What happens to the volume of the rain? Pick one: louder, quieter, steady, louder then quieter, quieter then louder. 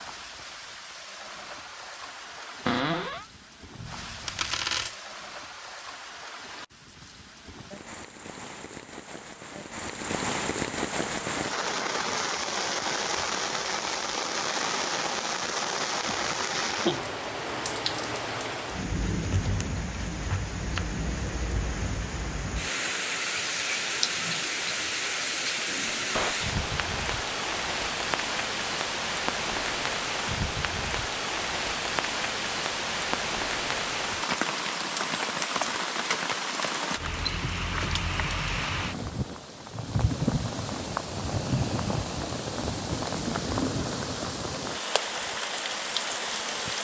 louder.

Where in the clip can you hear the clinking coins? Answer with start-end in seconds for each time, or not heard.
3.8-5.0.